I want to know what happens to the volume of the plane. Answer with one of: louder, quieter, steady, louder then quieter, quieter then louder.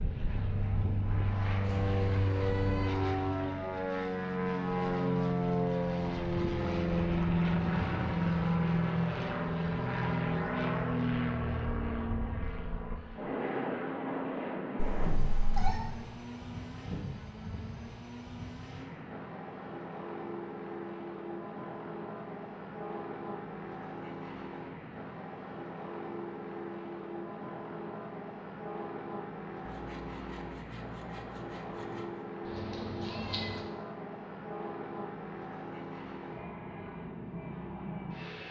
quieter.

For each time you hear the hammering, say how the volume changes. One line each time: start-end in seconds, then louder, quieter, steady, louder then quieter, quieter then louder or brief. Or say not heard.
not heard.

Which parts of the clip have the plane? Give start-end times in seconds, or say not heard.
0.0-38.4.